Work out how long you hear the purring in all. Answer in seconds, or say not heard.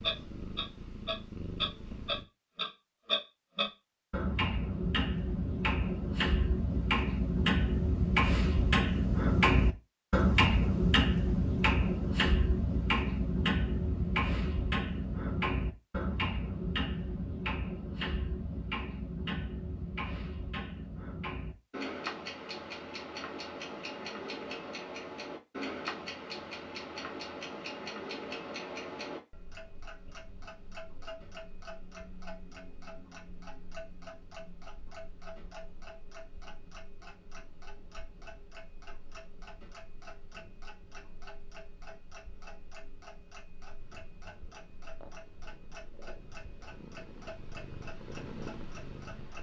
8 s.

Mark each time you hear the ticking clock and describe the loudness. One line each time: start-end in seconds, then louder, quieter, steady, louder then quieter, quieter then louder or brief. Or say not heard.
0.0-49.3 quieter.